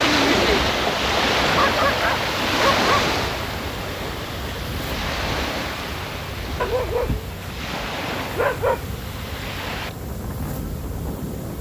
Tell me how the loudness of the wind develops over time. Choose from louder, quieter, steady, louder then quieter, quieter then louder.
quieter.